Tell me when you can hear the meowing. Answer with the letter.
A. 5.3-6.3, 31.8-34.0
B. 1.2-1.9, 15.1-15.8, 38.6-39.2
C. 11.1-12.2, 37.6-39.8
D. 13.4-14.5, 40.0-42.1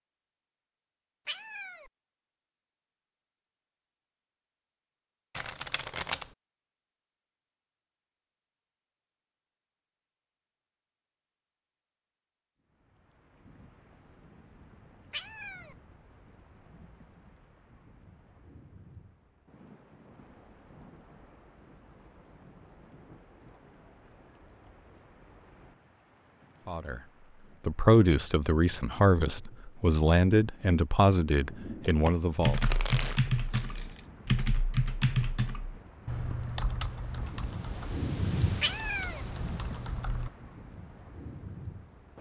B.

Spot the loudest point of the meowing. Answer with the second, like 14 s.
39 s.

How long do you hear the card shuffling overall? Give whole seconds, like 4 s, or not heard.
3 s.